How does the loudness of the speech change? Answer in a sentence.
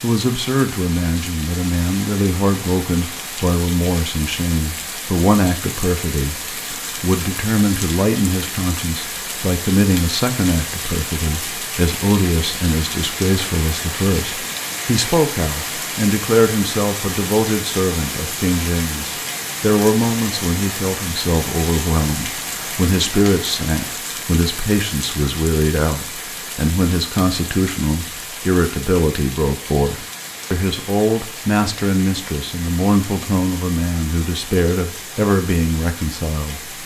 The loudness of the speech stays about the same.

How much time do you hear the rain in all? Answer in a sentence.
The rain can be heard for 37 seconds in total.